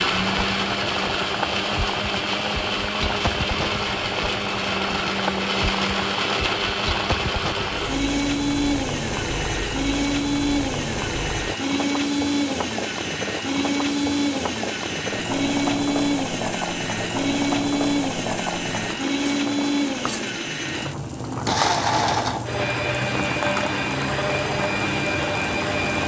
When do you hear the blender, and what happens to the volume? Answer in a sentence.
The blender can be heard from 0.0 to 26.0 s, at a steady volume.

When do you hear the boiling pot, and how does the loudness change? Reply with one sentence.
You can hear the boiling pot from 0.0 to 26.0 s, at a steady volume.